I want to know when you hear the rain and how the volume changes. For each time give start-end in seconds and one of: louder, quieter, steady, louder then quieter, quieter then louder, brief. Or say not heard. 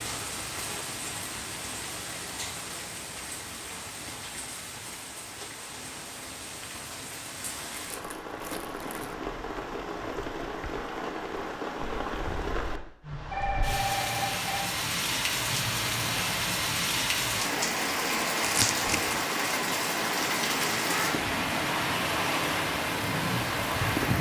0.0-24.1 louder.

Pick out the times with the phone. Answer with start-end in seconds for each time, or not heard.
13.3-14.7.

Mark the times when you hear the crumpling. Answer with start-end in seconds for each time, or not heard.
7.8-9.2, 18.4-19.2.